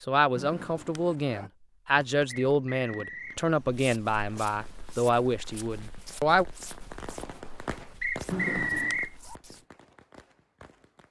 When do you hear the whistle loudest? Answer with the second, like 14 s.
9 s.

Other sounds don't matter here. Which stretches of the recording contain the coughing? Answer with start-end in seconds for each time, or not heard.
0.3-1.5, 8.3-9.0.